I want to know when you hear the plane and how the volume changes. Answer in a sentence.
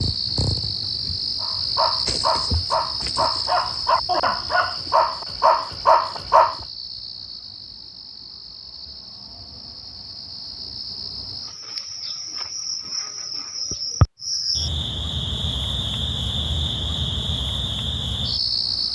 The plane can't be heard in this clip.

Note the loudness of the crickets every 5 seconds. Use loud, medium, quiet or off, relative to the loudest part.
loud, medium, loud, loud.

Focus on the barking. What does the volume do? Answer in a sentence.
The loudness of the barking goes up.